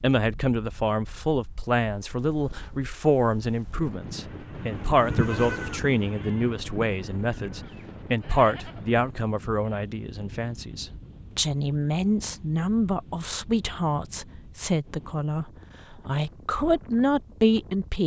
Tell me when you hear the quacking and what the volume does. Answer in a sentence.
You can't hear the quacking here.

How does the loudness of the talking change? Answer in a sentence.
The volume of the talking stays about the same.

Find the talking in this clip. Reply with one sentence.
You can hear the talking from 0.0 to 18.0 s.